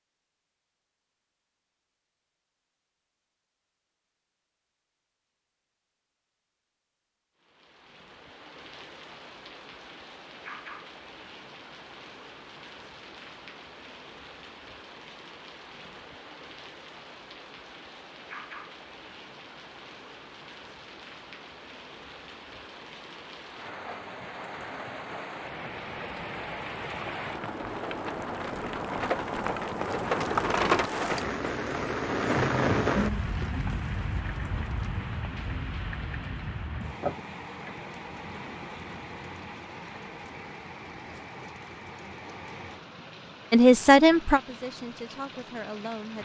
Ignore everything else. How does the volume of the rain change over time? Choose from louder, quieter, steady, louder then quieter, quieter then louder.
louder then quieter.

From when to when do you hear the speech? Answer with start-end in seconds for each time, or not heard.
43.5-46.2.